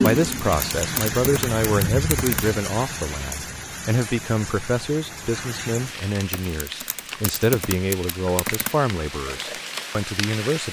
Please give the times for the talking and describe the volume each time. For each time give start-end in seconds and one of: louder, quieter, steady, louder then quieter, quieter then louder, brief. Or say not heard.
0.0-10.6 steady.